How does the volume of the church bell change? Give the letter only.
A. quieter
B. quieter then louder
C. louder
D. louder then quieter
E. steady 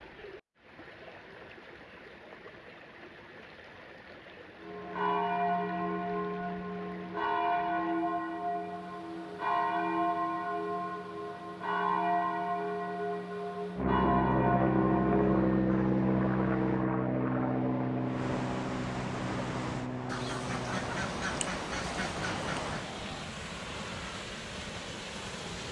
E.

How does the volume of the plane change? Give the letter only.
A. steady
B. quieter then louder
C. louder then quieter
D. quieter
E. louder
D.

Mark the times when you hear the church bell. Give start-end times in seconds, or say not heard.
4.6-15.4.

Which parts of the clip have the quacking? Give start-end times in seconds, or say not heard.
20.1-22.9.